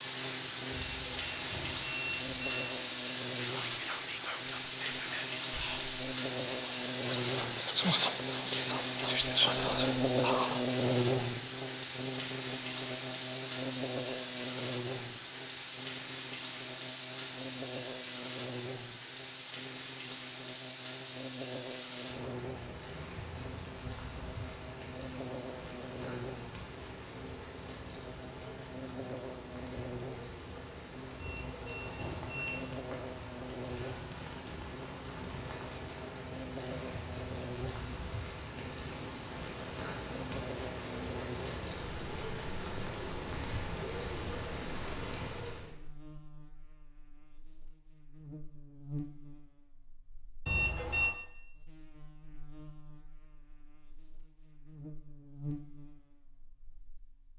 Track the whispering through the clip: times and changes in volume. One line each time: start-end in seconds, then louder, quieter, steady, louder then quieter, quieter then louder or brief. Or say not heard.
3.6-10.7 louder.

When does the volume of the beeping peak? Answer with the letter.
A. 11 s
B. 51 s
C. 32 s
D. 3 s
B.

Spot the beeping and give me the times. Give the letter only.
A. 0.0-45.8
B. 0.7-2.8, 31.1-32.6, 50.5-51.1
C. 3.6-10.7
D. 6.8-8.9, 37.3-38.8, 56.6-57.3
B.